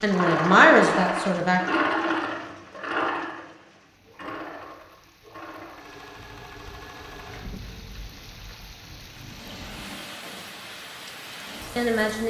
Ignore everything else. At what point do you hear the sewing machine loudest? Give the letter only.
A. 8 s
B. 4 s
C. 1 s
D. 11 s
C.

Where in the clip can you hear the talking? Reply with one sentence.
You can hear the talking from 0.0 to 1.6 s and from 11.8 to 12.2 s.